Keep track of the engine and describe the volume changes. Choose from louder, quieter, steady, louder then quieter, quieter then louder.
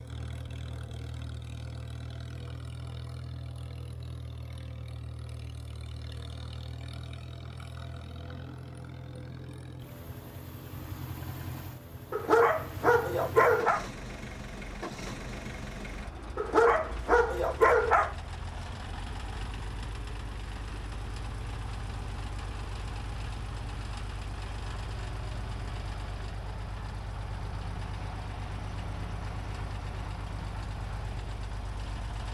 steady.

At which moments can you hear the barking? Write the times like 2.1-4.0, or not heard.
12.1-13.8, 16.4-18.1.